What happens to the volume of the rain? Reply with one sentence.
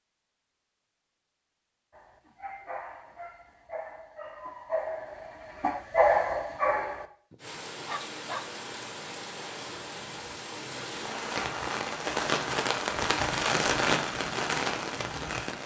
The loudness of the rain goes up.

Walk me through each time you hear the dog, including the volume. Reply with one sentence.
The dog can be heard from 1.9 to 8.4 s, getting louder then quieter.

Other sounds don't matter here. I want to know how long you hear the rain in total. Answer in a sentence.
The rain can be heard for 8 seconds in total.